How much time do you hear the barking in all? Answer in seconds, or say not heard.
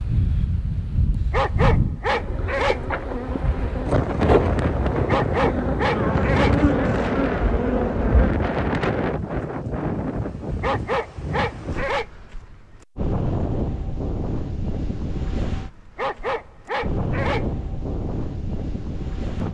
6 s.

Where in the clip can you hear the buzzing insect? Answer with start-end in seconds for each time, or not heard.
2.1-8.3.